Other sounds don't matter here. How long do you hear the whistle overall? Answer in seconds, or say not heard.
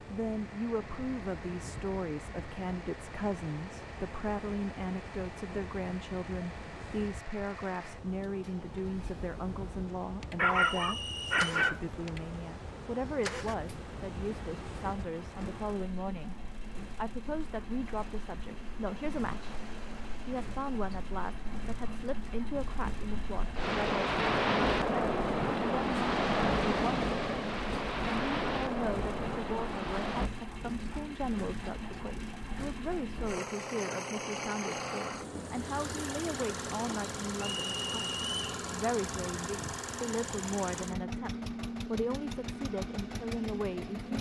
2 s.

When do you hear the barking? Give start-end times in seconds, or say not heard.
10.3-11.8.